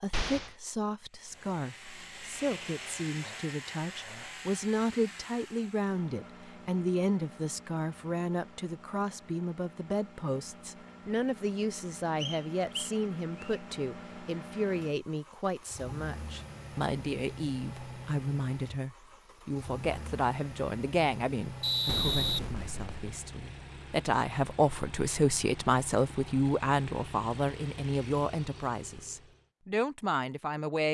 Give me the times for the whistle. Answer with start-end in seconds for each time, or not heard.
12.2-13.6, 21.6-23.1.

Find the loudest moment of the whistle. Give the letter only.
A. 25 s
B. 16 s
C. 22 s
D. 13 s
C.